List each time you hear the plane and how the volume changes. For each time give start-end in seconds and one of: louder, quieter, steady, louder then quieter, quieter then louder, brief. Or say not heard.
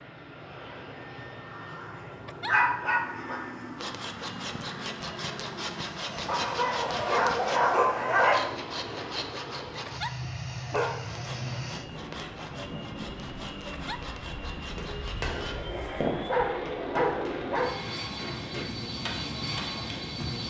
0.0-20.4 louder.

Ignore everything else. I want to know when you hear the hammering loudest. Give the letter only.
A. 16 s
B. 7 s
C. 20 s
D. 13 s
A.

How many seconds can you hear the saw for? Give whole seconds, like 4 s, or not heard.
12 s.